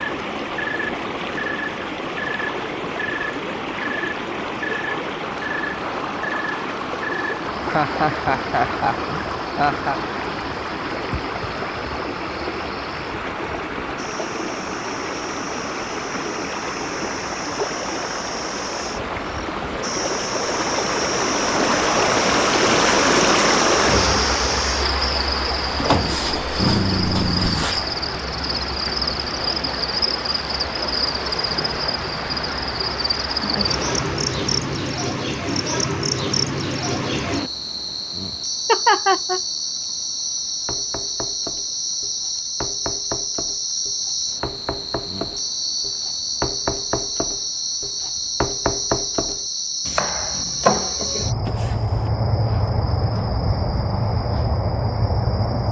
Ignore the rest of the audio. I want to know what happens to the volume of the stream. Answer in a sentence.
The volume of the stream goes up, then down.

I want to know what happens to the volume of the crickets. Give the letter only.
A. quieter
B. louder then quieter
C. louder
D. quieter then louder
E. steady
C.